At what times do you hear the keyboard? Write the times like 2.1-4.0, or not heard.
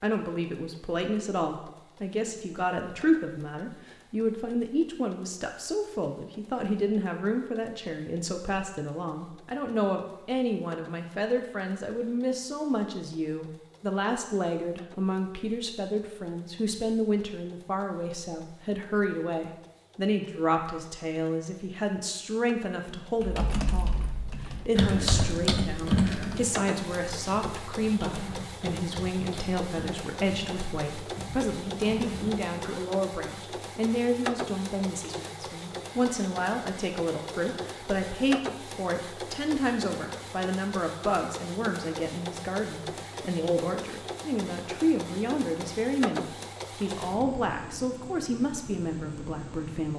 23.2-32.8.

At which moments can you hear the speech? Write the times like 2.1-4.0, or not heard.
0.0-49.9.